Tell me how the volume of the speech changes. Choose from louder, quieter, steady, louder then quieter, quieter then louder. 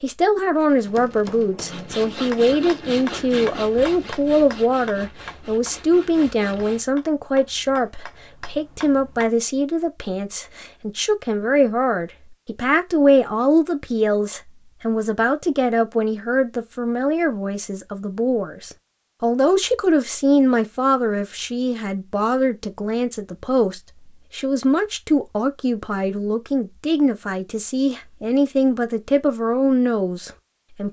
steady.